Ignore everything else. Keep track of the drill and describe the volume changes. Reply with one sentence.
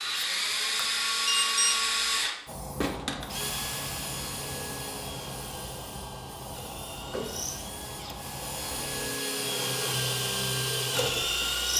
The volume of the drill goes down, then up.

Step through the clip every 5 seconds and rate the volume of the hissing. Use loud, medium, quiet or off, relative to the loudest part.
loud, loud, off.